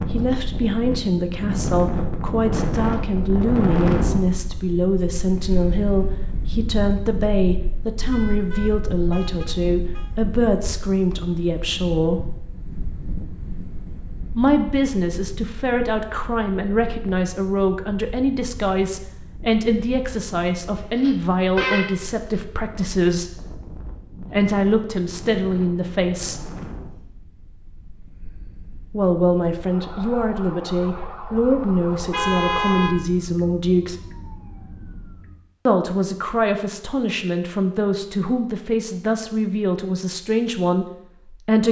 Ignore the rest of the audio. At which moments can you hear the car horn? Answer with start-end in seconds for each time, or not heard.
8.1-10.2, 20.9-22.4, 31.9-33.0.